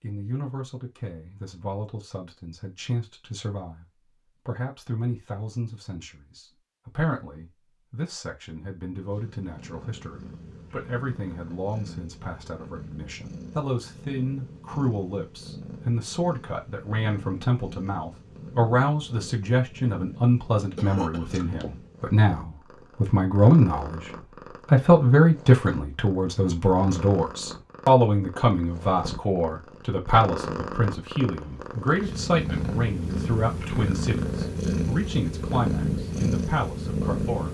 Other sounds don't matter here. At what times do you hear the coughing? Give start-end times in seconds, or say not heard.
20.8-21.4.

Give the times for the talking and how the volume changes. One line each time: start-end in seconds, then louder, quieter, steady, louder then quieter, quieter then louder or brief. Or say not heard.
0.0-37.5 louder then quieter.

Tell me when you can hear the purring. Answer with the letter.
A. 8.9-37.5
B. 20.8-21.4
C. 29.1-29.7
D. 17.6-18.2
A.